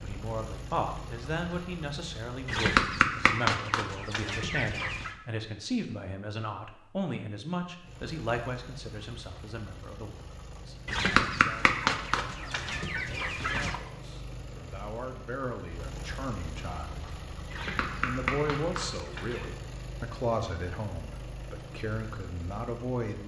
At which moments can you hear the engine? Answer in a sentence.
You can hear the engine from 0.0 to 2.6 s and from 7.8 to 23.2 s.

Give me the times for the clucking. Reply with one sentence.
The clucking can be heard from 2.5 to 5.2 s, from 10.8 to 13.8 s and from 17.5 to 19.5 s.